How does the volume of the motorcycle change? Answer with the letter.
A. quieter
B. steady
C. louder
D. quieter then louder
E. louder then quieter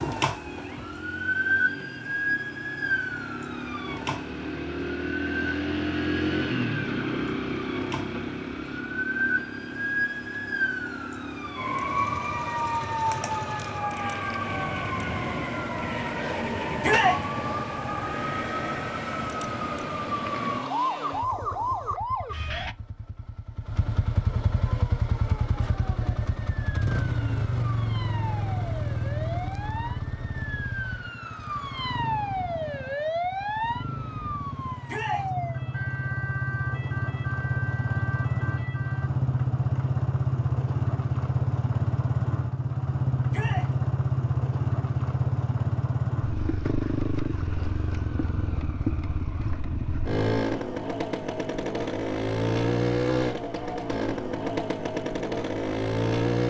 D.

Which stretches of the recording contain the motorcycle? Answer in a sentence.
The motorcycle can be heard from 0.0 to 56.4 s.